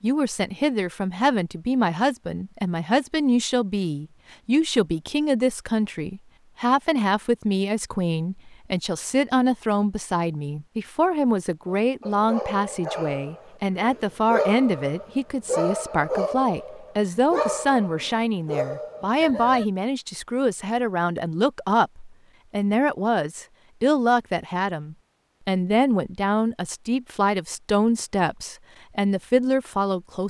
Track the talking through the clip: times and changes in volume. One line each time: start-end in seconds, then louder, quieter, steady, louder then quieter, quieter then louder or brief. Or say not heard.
0.0-30.2 steady.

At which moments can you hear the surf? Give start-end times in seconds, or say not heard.
not heard.